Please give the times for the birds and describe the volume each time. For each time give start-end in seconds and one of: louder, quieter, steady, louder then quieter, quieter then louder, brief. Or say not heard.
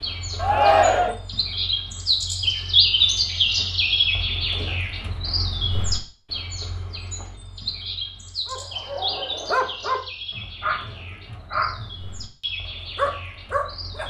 0.0-14.0 quieter.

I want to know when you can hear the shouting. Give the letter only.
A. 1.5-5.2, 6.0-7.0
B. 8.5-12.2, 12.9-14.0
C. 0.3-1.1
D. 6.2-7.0
C.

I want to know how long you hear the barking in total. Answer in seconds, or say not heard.
5 s.